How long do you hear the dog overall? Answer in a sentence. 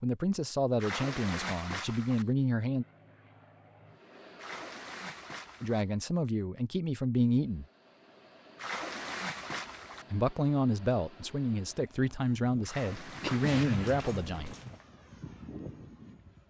You can hear the dog for 2 seconds altogether.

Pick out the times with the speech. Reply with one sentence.
You can hear the speech from 0.0 to 2.9 s, from 5.6 to 7.7 s and from 10.1 to 14.6 s.